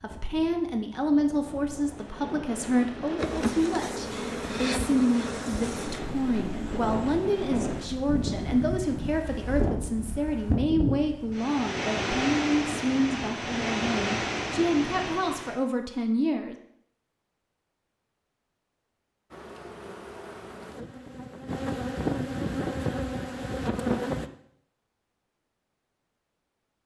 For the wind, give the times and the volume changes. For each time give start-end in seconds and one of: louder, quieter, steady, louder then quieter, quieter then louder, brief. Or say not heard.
0.0-15.6 louder.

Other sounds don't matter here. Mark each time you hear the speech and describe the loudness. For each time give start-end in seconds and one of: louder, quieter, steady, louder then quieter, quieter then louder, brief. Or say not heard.
0.0-16.6 steady.